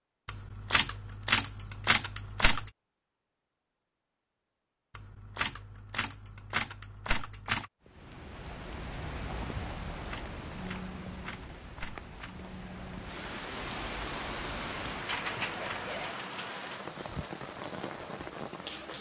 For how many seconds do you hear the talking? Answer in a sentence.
The talking can't be heard in this clip.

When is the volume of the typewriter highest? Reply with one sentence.
The volume of the typewriter peaks at 1 second.